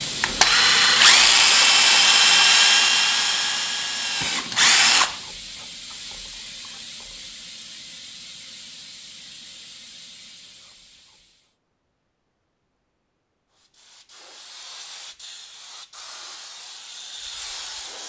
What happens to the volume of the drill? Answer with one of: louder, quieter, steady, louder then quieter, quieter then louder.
quieter.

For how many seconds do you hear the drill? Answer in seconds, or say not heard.
5 s.